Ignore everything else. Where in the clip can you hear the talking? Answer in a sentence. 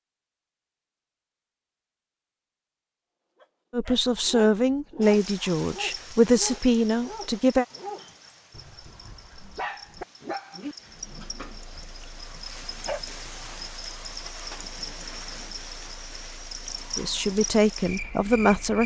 The talking can be heard from 3.7 to 7.7 s and from 16.9 to 18.8 s.